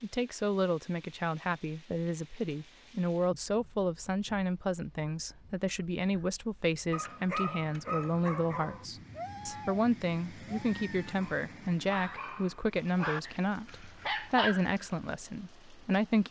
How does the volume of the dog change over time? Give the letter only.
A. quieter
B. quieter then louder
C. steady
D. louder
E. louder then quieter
B.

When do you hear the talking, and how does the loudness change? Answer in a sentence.
The talking can be heard from 0.0 to 16.2 s, at a steady volume.